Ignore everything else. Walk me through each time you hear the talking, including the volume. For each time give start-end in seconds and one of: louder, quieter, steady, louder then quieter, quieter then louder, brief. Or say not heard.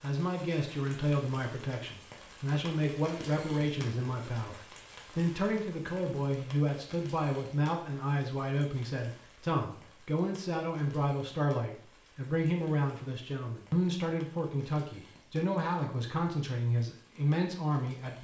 0.0-18.1 steady.